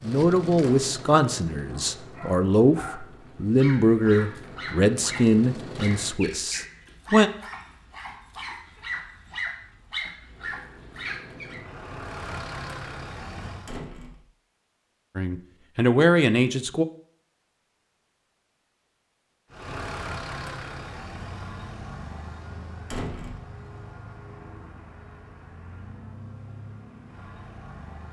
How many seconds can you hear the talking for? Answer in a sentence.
The talking can be heard for 9 seconds in total.